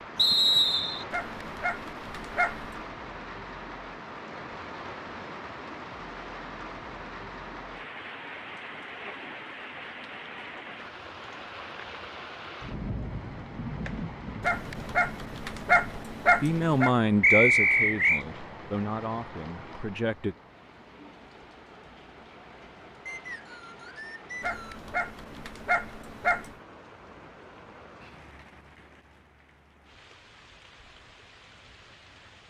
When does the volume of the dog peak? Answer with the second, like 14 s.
16 s.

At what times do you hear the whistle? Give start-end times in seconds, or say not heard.
0.1-1.1, 17.2-18.2, 23.1-24.9.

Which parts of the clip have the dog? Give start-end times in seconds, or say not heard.
1.1-2.8, 14.4-16.9, 24.4-26.6.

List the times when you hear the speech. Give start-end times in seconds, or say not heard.
16.4-20.4.